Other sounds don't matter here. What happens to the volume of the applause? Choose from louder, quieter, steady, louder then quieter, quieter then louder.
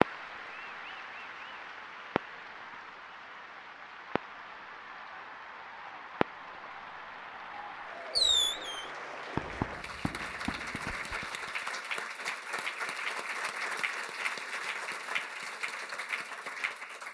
louder.